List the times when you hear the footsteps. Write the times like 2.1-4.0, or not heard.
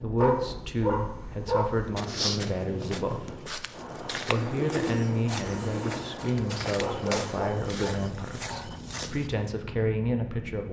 1.7-9.3.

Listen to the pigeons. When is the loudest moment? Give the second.
5 s.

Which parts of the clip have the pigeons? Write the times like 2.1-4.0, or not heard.
4.3-6.0.